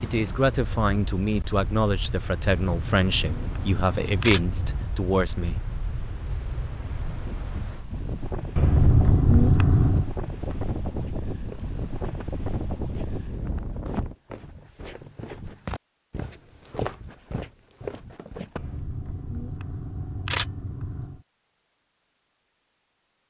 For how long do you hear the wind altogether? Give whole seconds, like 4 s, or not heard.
14 s.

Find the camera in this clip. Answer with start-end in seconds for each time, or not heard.
2.6-4.8, 8.6-10.1, 18.6-21.1.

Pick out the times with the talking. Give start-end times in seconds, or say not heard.
0.0-5.6.